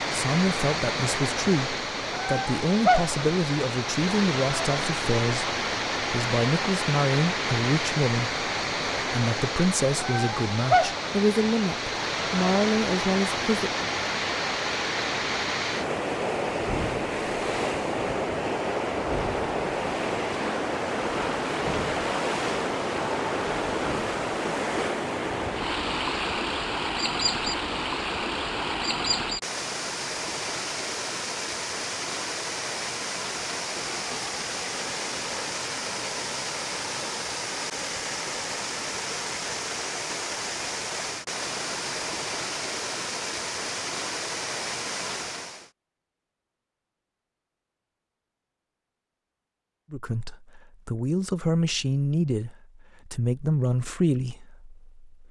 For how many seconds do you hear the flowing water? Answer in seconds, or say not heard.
46 s.